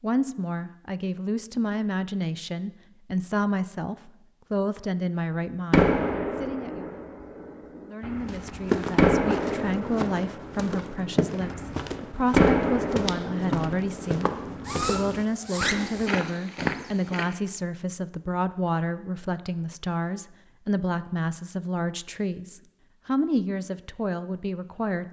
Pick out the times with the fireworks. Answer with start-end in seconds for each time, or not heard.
5.7-16.1.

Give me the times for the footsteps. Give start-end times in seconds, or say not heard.
8.2-17.4.